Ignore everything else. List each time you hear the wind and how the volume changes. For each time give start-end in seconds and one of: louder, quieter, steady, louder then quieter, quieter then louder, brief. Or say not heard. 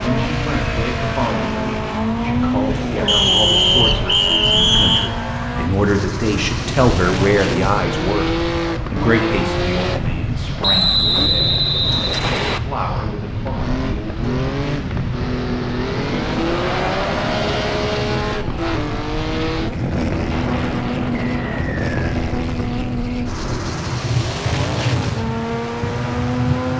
0.0-26.7 steady.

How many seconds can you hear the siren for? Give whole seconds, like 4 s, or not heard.
not heard.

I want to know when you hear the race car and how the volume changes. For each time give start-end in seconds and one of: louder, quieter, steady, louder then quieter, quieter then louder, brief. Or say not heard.
0.0-26.7 steady.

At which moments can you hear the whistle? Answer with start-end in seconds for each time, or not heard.
3.0-5.1, 10.6-12.6, 21.2-22.1.